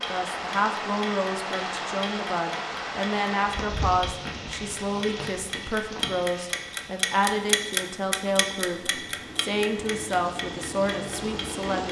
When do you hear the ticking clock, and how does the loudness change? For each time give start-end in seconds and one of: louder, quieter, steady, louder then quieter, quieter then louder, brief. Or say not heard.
0.0-11.8 louder then quieter.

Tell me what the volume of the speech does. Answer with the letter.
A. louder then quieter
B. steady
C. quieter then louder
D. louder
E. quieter
B.